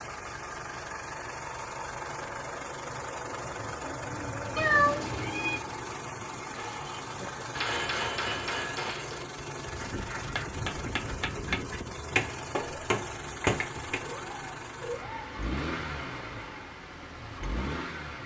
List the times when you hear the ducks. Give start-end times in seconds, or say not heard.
3.4-5.3, 9.8-11.8.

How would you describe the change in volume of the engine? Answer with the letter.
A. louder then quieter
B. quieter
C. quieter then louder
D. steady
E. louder
D.